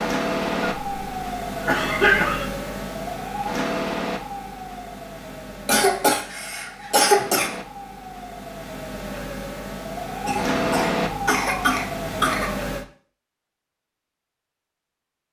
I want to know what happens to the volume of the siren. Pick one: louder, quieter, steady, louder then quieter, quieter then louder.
quieter then louder.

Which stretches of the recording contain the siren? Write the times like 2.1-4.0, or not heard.
0.0-12.8.